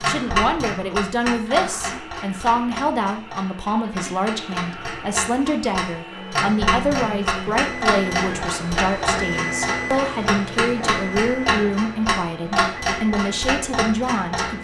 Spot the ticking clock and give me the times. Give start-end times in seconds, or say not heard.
0.0-14.5.